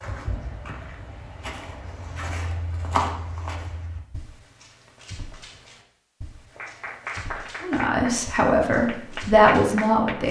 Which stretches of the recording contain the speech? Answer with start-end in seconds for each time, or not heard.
7.6-10.2.